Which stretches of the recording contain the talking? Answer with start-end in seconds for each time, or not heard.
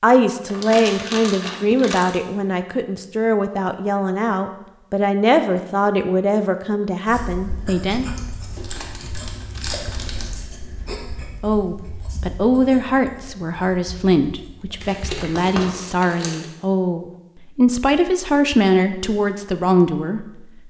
0.0-8.1, 11.4-20.6.